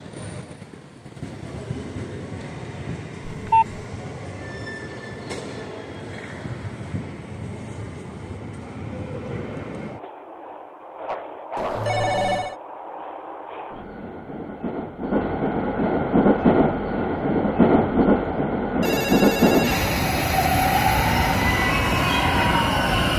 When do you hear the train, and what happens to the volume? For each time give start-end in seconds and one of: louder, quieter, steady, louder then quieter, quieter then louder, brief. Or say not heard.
0.0-23.1 louder.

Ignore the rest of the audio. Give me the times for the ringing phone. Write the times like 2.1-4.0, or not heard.
3.3-3.8, 11.6-12.6, 18.8-19.9.